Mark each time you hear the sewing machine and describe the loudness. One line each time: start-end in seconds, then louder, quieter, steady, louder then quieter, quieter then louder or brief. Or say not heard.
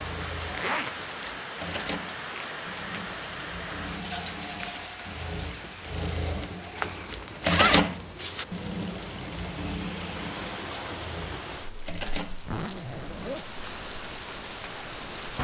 0.0-13.4 louder then quieter.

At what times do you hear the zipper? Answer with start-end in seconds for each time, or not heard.
0.5-0.9, 6.8-8.4, 12.4-13.4.